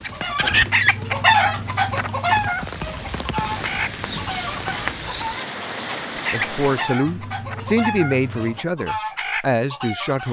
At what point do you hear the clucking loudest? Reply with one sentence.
The volume of the clucking peaks at 1 second.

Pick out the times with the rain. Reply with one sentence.
You can hear the rain from 0.0 to 7.0 s.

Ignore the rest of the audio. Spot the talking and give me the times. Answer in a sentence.
The talking can be heard from 6.3 to 10.2 s.